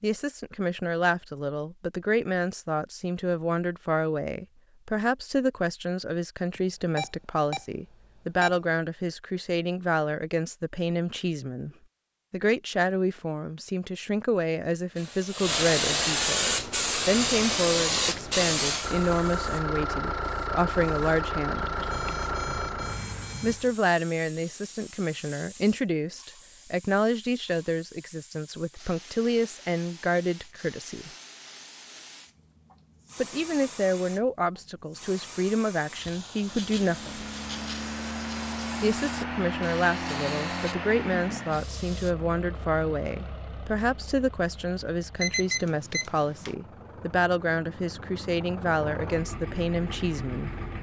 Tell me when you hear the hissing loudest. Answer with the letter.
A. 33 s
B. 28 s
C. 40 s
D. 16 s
D.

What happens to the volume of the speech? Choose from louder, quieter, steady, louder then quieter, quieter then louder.
steady.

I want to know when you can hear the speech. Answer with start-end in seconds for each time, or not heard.
0.0-11.7, 12.3-21.7, 23.4-31.1, 33.1-37.2, 38.8-50.5.